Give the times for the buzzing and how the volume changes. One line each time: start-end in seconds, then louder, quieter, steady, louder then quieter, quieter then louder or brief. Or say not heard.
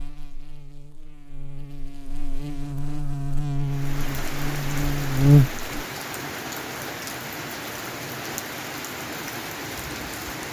0.0-5.6 louder.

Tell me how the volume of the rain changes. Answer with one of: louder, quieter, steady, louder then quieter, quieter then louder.
steady.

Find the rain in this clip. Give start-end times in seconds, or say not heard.
3.6-10.4.